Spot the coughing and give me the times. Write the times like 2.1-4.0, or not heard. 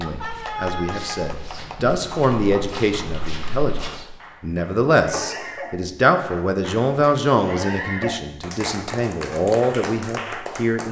5.1-5.5.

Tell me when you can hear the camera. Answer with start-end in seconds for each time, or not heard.
not heard.